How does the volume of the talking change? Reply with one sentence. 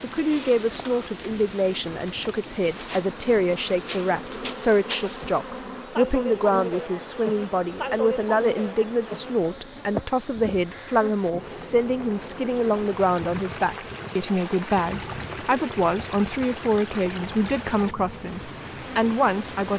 The volume of the talking stays about the same.